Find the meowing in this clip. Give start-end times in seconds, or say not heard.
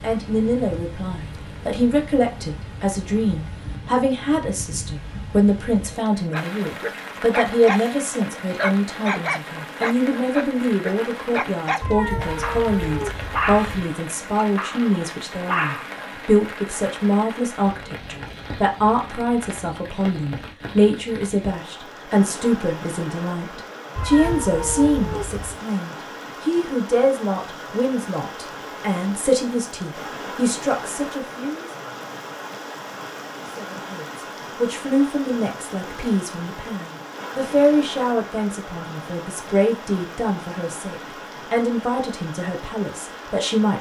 11.8-13.8, 23.9-25.6.